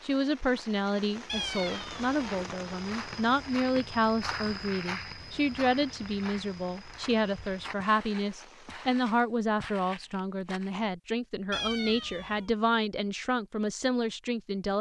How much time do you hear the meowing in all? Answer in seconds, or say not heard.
2 s.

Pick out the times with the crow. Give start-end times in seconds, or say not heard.
not heard.